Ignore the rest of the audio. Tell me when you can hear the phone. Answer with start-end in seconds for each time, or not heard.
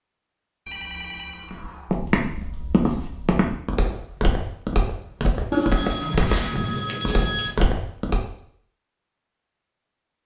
0.7-2.0, 5.5-7.5.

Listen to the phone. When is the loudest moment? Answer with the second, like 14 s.
6 s.